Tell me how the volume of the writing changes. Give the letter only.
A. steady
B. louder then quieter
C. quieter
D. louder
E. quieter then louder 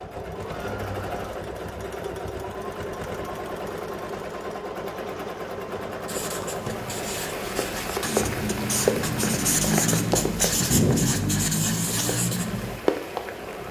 D.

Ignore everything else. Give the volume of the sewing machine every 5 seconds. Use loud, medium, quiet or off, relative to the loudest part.
loud, loud, medium.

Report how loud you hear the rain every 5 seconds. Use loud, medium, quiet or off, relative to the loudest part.
off, loud, loud.